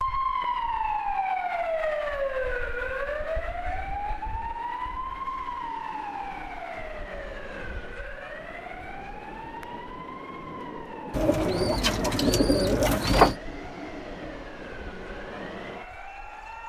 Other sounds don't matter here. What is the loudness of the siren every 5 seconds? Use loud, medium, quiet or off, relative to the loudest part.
loud, medium, quiet, quiet.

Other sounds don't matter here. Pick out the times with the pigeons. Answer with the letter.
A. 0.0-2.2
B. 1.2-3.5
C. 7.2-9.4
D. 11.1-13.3
D.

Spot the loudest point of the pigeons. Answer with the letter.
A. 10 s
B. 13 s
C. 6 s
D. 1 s
B.